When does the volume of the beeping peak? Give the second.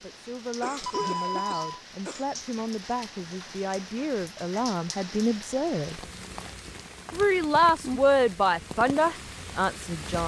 1 s.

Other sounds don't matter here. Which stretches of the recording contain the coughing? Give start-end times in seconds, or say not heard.
0.6-2.2.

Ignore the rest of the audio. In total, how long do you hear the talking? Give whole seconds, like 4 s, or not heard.
9 s.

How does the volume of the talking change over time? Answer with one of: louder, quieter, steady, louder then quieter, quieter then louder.
louder.